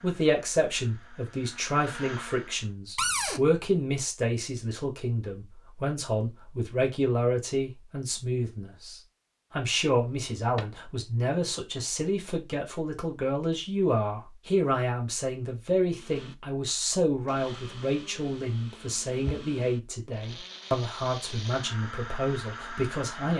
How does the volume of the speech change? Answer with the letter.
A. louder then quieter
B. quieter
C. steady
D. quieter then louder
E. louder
C.